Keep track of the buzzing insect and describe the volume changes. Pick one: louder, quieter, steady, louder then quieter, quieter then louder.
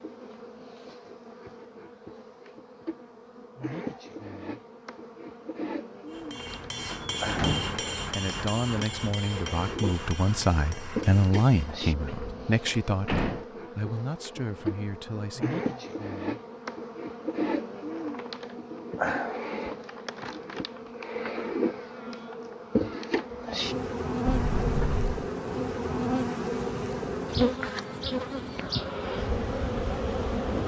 louder.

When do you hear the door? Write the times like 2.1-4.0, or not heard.
7.2-7.8, 12.1-13.4, 24.2-25.1.